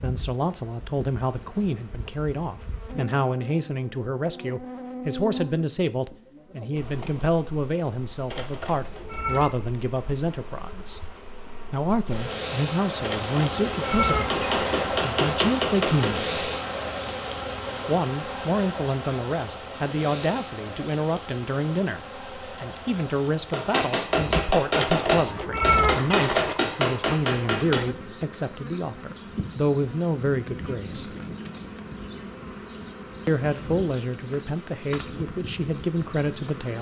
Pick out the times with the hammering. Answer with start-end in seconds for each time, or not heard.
14.1-16.3, 23.5-27.9.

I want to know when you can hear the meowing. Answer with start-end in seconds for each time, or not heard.
8.3-9.6, 13.0-14.8, 24.7-26.6.